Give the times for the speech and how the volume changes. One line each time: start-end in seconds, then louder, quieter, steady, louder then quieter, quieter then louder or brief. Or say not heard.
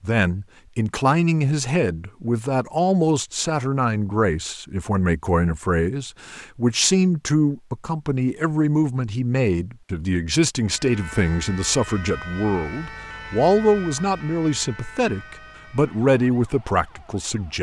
0.0-17.5 steady.